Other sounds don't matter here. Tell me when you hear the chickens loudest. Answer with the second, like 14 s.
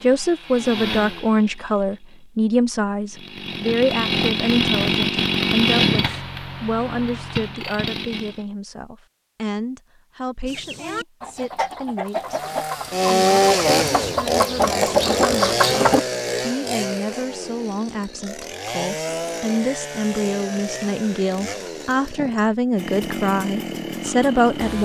15 s.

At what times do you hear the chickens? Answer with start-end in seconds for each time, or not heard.
10.4-16.0.